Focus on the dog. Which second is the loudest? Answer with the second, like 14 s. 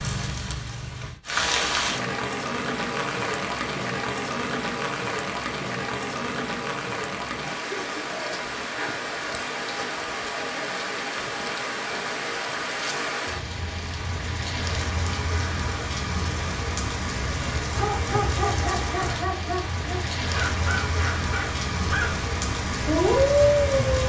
23 s.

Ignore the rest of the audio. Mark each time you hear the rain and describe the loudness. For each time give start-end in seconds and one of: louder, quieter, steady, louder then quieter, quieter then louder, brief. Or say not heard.
0.0-24.0 steady.